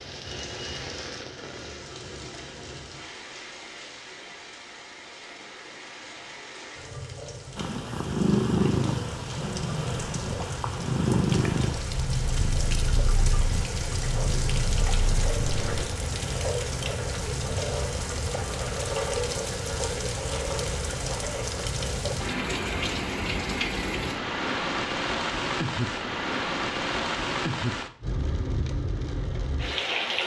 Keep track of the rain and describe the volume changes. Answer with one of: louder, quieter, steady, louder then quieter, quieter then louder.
louder.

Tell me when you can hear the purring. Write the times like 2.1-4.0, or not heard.
7.5-15.8.